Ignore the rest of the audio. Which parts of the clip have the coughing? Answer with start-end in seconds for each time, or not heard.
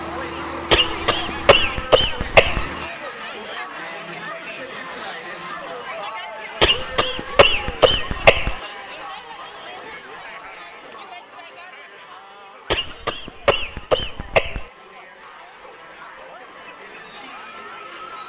0.7-2.6, 6.6-8.6, 12.7-14.7.